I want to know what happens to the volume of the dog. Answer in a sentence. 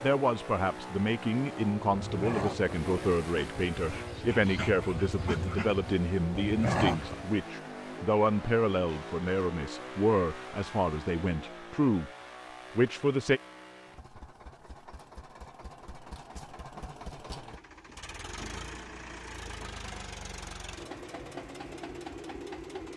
The volume of the dog goes down, then up.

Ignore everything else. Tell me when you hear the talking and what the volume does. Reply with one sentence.
The talking can be heard from 0.0 to 12.1 s, at a steady volume; and briefly from 12.8 to 13.4 s.